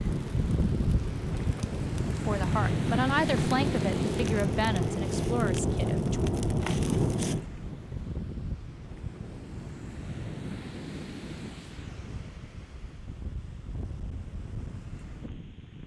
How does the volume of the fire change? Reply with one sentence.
The volume of the fire goes up, then down.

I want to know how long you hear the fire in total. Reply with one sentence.
You can hear the fire for 10 seconds altogether.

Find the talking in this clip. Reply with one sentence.
You can hear the talking from 2.2 to 6.2 s.